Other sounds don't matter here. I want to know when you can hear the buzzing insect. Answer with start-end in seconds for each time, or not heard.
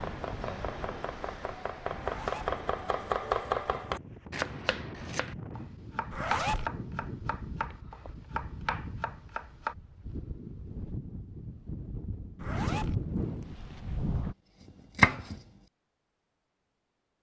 not heard.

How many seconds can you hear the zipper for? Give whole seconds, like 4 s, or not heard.
2 s.